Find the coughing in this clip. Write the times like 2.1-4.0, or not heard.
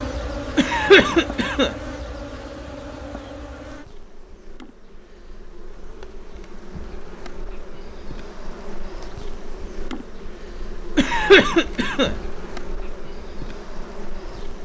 0.6-1.8, 10.9-12.2.